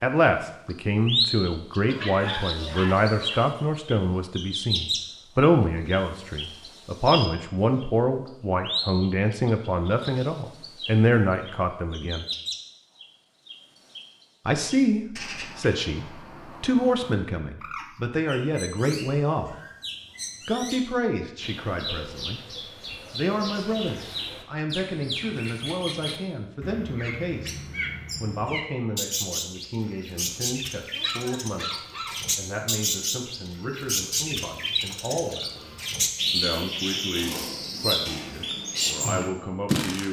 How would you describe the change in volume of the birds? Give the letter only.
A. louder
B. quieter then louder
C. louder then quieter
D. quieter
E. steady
B.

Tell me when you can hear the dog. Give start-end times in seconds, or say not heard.
1.9-3.5, 30.9-32.2.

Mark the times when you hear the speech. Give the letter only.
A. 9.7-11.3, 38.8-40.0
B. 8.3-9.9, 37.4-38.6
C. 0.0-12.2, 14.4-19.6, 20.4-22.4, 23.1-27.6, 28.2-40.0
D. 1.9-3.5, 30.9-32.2
C.